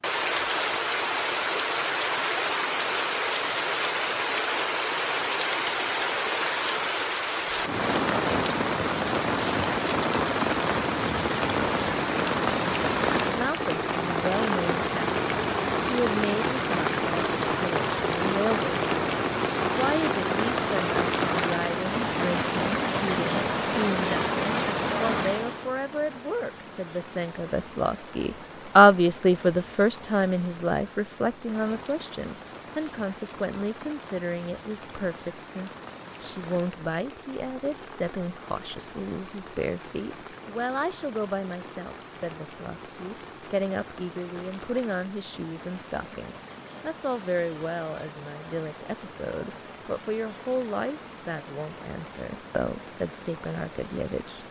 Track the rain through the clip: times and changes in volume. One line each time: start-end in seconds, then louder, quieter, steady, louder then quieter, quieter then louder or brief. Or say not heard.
0.0-54.4 quieter.